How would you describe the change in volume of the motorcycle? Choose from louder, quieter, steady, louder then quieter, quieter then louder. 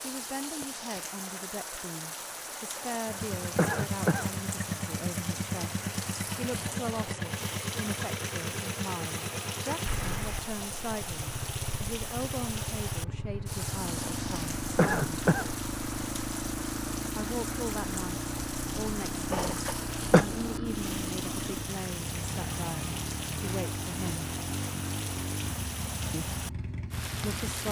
steady.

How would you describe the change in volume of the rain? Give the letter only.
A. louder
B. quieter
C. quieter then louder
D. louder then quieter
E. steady
E.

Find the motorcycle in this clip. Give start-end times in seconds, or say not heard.
3.0-27.6.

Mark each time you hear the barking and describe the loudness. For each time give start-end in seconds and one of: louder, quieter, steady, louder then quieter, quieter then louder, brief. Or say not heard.
not heard.